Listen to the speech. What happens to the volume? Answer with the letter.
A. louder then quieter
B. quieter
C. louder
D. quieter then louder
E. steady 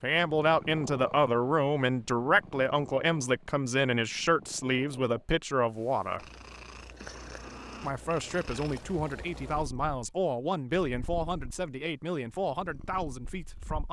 B.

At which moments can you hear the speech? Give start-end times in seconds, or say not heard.
0.0-6.2, 7.8-13.8.